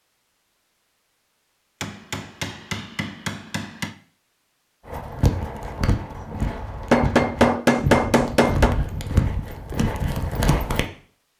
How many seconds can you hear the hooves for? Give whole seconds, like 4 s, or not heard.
6 s.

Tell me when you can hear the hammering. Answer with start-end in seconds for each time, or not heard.
1.8-4.0, 6.9-8.8.